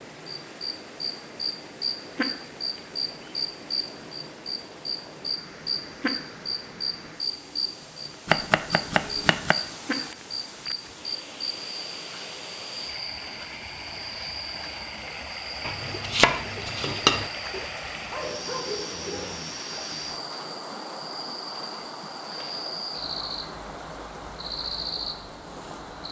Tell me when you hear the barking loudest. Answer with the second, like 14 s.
19 s.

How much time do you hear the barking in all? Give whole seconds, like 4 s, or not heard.
2 s.